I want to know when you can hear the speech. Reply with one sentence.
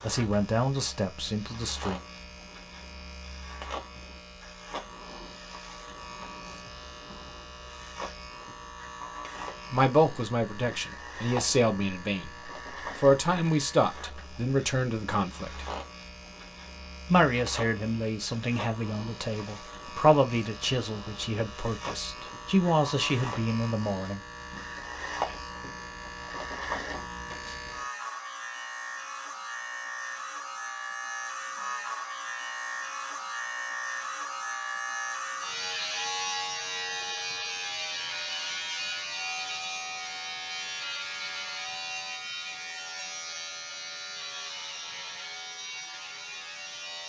The speech can be heard from 0.0 to 2.0 s, from 9.7 to 15.7 s and from 17.1 to 24.2 s.